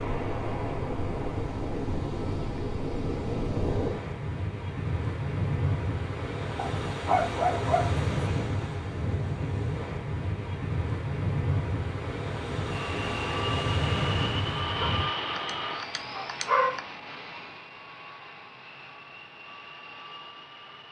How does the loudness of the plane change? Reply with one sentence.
The loudness of the plane goes down.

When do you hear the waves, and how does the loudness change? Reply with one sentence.
You can hear the waves from 0.0 to 15.1 s, at a steady volume.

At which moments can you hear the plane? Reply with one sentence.
The plane can be heard from 12.7 to 20.8 s.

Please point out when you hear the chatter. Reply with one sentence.
The chatter can't be heard in this clip.